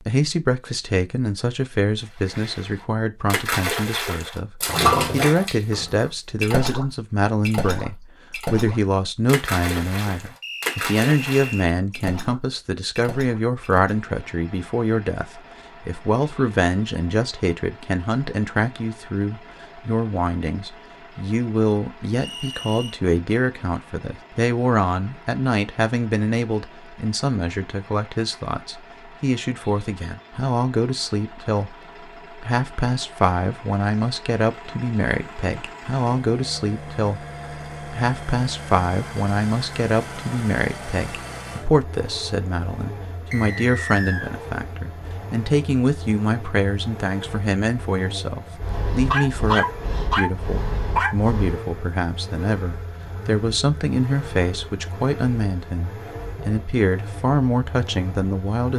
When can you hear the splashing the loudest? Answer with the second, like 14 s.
5 s.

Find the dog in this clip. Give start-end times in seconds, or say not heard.
48.6-51.6.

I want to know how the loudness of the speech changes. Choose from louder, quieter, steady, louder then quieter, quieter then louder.
steady.